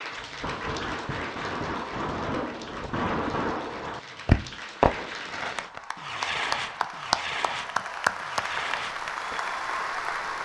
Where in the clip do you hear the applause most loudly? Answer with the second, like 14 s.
8 s.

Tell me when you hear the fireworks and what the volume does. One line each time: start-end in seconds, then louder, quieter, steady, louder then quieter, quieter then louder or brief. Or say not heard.
0.1-9.3 louder then quieter.